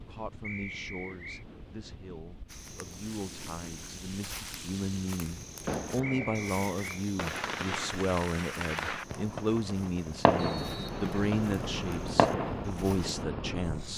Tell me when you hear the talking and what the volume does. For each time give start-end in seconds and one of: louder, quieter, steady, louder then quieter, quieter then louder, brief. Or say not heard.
0.1-13.9 louder.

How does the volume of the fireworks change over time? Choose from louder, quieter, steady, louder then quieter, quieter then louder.
louder.